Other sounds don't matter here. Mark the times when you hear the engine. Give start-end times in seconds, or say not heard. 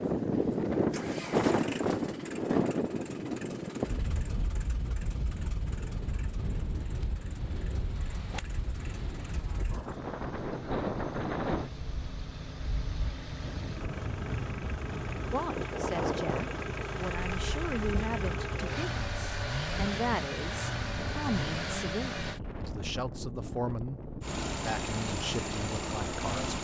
0.0-22.4, 24.2-26.5.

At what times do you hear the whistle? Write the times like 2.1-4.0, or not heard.
not heard.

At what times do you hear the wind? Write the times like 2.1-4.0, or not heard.
0.0-26.4.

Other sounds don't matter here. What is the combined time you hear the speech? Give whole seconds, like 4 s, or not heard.
11 s.